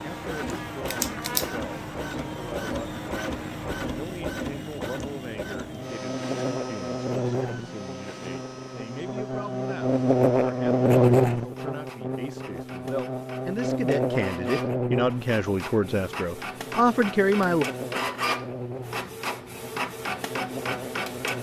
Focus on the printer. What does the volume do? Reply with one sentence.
The volume of the printer goes down, then up.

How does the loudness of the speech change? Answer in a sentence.
The loudness of the speech goes up.